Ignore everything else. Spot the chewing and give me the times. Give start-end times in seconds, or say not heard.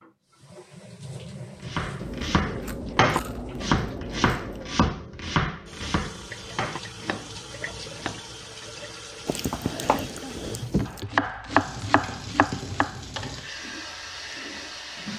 1.9-4.8, 9.2-11.1.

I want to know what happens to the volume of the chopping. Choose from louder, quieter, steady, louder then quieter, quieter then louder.
quieter then louder.